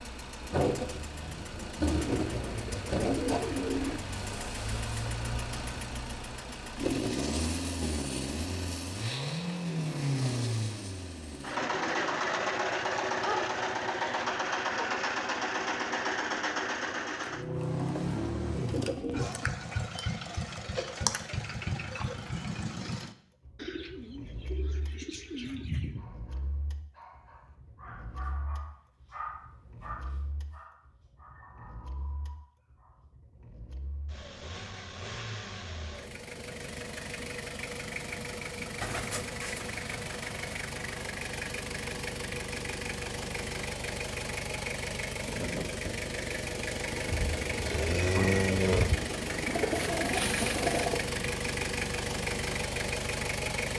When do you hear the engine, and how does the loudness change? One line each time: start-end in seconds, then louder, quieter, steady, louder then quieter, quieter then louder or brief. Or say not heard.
0.0-53.7 quieter then louder.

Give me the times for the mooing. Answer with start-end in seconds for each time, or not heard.
47.1-49.0.